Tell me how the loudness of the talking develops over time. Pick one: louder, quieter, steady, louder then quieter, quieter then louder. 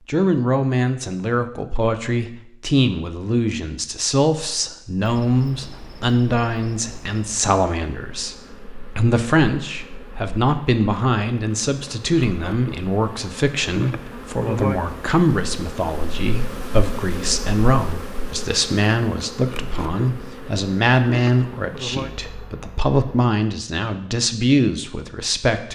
steady.